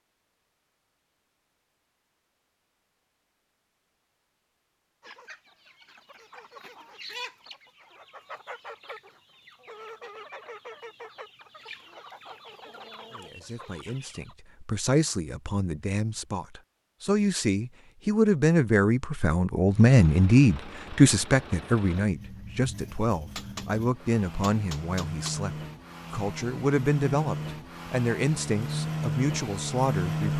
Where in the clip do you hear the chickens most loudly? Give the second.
7 s.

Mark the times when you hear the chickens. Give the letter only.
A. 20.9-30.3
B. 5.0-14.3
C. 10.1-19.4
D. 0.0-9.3
B.